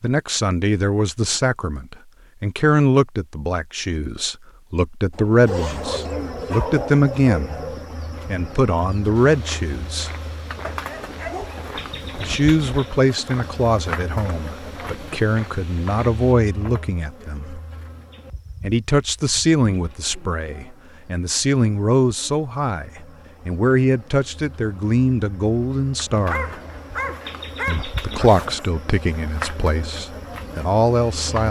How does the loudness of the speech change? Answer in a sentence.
The loudness of the speech stays about the same.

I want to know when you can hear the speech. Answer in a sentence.
You can hear the speech from 0.0 to 10.1 s, from 12.2 to 17.6 s, from 18.6 to 26.6 s and from 27.6 to 31.4 s.